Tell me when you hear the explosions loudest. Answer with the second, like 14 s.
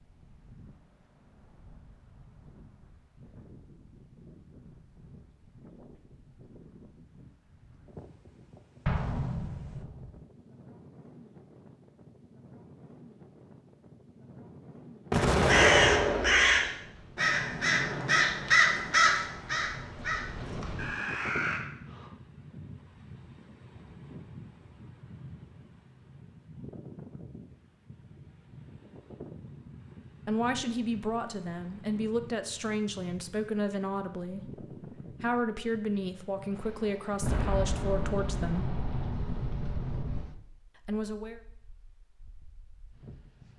16 s.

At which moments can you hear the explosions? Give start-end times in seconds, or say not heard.
8.8-10.2, 15.1-16.7, 37.2-40.2.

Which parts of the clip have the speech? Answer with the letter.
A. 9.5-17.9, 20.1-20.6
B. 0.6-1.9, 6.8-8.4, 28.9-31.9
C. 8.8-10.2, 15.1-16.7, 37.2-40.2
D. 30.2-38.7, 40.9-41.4
D.